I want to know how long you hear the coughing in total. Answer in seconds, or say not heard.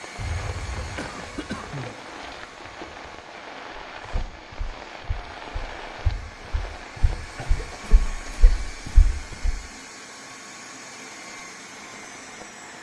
3 s.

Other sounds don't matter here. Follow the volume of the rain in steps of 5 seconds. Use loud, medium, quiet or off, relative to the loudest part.
loud, loud, medium.